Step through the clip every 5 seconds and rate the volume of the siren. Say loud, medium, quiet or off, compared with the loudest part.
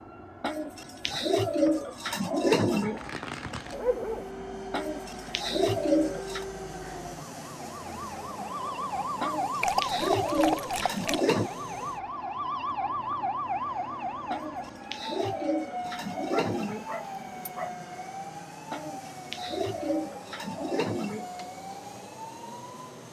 medium, loud, loud, medium, medium.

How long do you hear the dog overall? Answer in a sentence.
You can hear the dog for 4 seconds altogether.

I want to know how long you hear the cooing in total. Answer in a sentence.
You can hear the cooing for 12 seconds altogether.